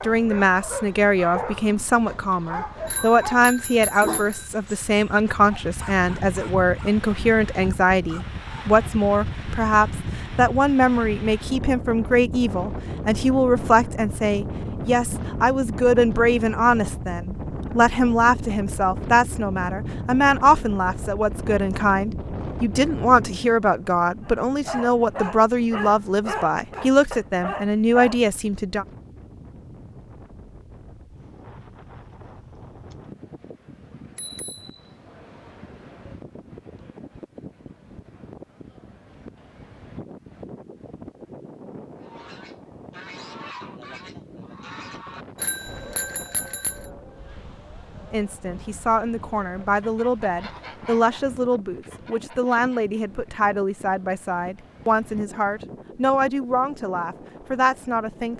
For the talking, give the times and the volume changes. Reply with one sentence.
You can hear the talking from 0.0 to 28.9 s, at a steady volume; and from 48.1 to 58.3 s, at a steady volume.